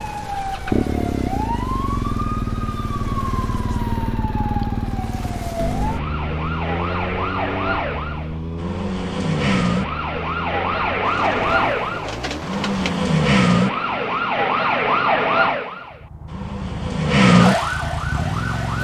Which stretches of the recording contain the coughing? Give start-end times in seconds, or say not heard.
not heard.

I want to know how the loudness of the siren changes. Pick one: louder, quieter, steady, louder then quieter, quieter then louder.
louder.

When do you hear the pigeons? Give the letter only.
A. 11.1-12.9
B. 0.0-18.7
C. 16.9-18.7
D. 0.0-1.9
A.